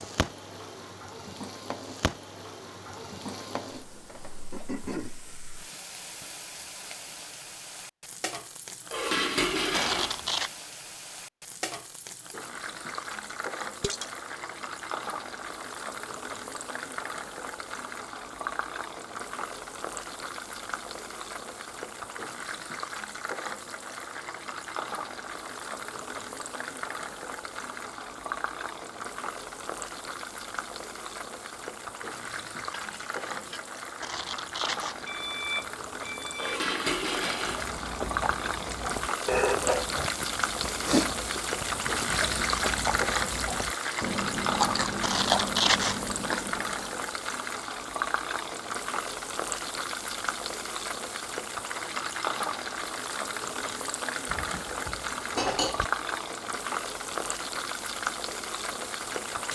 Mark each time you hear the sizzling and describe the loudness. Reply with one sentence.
The sizzling can be heard from 0.0 to 59.5 s, getting louder.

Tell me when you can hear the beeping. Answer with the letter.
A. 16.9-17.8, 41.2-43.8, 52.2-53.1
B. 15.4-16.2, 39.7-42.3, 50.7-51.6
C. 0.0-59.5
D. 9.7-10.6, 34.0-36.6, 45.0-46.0
D.